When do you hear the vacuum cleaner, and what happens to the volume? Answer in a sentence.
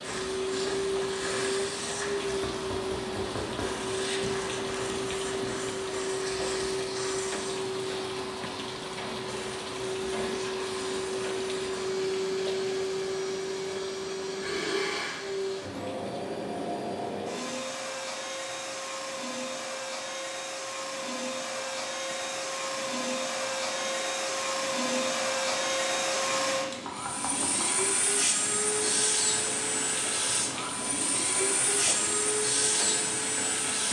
You can hear the vacuum cleaner from 0.0 to 33.8 s, at a steady volume.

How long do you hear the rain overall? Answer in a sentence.
You can hear the rain for 34 seconds altogether.